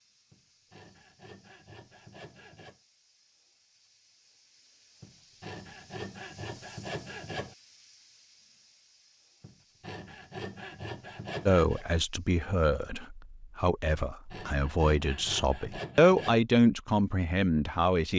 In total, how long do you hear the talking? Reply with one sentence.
You can hear the talking for 7 seconds altogether.